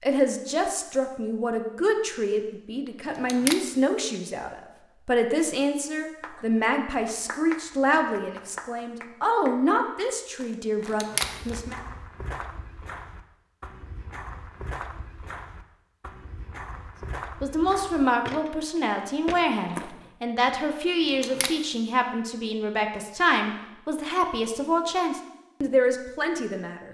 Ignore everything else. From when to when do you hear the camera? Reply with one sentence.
You can hear the camera from 3.1 to 3.6 s, from 10.8 to 11.3 s and from 21.0 to 21.5 s.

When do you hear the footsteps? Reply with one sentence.
The footsteps can be heard from 11.2 to 20.1 s.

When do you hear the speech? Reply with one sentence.
The speech can be heard from 0.0 to 11.8 s and from 17.4 to 26.8 s.